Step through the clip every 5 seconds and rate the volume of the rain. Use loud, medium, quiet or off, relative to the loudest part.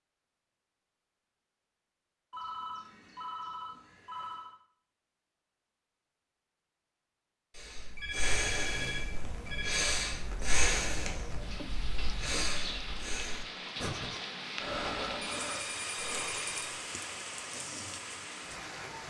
off, medium, loud, loud.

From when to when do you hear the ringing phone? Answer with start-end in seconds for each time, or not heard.
2.3-4.5, 8.0-9.9, 15.4-16.7.